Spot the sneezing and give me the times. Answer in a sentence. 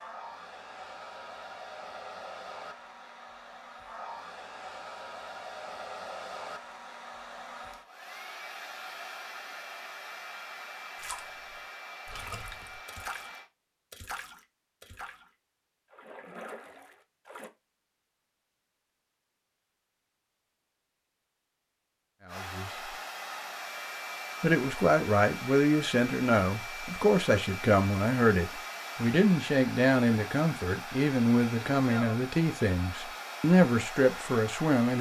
The sneezing can't be heard in this clip.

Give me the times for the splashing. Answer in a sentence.
The splashing can be heard from 10.9 to 17.5 s.